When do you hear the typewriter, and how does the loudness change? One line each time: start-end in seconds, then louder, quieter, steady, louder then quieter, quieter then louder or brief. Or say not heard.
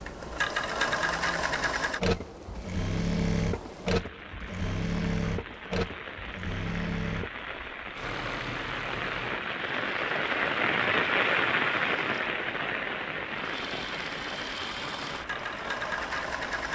not heard.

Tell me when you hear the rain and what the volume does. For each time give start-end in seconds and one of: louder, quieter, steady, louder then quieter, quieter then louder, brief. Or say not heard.
0.0-16.6 louder then quieter.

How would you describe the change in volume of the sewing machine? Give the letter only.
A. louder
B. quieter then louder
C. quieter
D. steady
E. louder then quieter
B.